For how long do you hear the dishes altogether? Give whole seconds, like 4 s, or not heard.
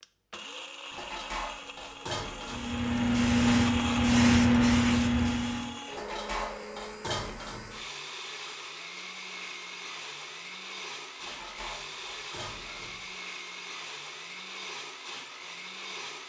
6 s.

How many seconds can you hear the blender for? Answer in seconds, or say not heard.
16 s.